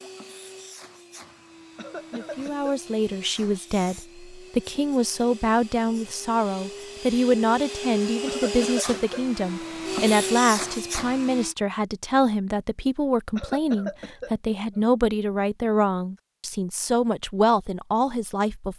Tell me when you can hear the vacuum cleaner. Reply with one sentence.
You can hear the vacuum cleaner from 0.0 to 11.6 s.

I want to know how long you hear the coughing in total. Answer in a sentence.
The coughing can be heard for 4 seconds in total.